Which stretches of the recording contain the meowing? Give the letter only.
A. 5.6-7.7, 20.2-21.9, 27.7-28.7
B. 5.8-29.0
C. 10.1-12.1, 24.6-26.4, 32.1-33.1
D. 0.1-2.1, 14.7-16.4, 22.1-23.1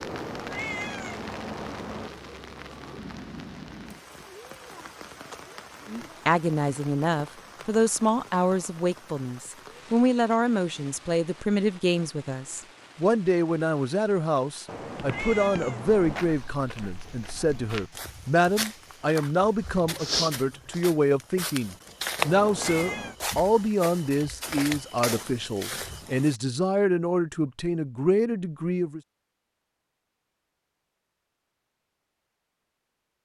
D.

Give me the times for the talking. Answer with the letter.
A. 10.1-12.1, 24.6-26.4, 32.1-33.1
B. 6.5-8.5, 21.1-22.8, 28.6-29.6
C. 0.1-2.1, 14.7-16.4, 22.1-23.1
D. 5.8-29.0
D.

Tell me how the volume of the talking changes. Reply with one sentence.
The volume of the talking stays about the same.